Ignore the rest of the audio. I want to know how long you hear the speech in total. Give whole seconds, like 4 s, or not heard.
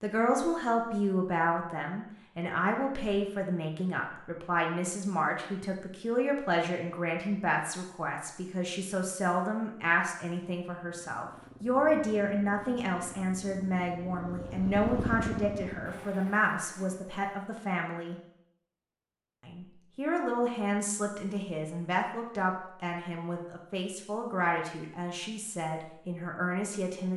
26 s.